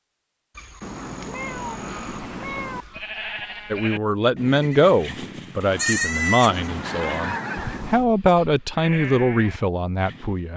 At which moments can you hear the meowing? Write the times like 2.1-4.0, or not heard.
0.8-2.9, 6.5-8.1.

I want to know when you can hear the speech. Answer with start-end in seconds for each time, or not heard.
3.7-10.5.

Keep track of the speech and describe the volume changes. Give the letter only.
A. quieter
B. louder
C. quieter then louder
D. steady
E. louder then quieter
C.